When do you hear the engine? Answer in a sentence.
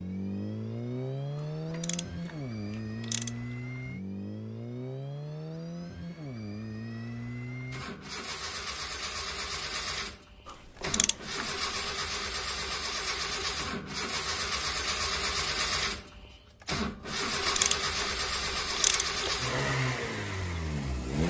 The engine can be heard from 0.0 to 21.2 s.